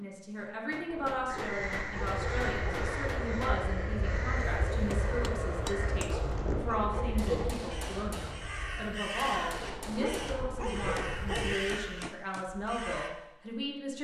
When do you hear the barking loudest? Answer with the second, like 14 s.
11 s.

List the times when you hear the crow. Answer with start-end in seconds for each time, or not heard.
1.2-13.1.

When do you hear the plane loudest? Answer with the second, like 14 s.
5 s.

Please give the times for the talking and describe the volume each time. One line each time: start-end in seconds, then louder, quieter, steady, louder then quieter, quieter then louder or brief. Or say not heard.
0.0-13.9 steady.